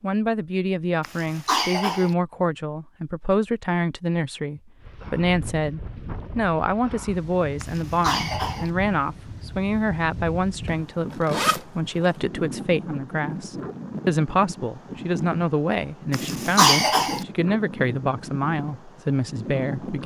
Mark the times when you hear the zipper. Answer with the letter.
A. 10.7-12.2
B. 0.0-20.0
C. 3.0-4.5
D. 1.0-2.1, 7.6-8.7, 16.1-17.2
A.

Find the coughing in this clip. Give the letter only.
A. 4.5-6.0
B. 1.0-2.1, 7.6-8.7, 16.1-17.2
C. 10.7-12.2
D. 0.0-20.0
B.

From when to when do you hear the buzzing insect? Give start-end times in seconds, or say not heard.
not heard.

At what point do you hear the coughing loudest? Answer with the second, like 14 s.
17 s.